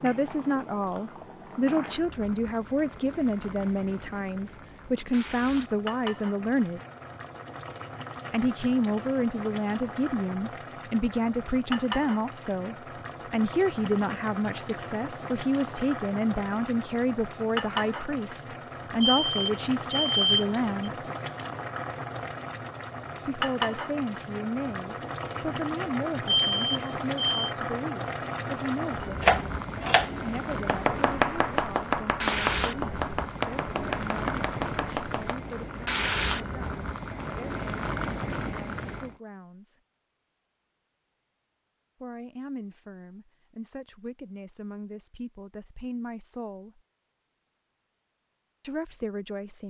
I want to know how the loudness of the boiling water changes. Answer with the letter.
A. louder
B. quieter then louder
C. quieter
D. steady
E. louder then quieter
A.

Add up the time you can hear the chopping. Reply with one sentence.
You can hear the chopping for 6 seconds altogether.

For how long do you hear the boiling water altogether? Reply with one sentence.
The boiling water can be heard for 39 seconds in total.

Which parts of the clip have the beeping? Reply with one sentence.
The beeping can be heard from 19.0 to 20.7 s and from 26.2 to 27.6 s.